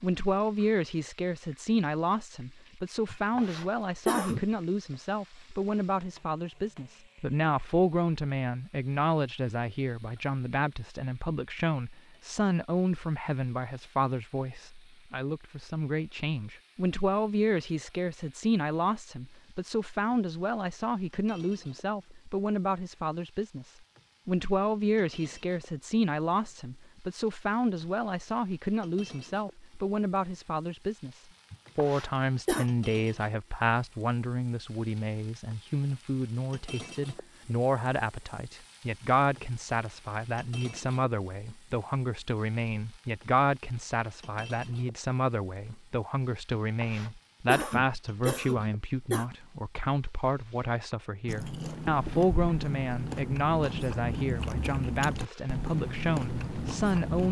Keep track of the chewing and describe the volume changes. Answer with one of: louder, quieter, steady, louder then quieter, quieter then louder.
steady.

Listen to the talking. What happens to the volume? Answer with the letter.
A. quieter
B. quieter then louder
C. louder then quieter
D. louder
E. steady
E.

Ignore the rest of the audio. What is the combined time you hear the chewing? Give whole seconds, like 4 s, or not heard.
6 s.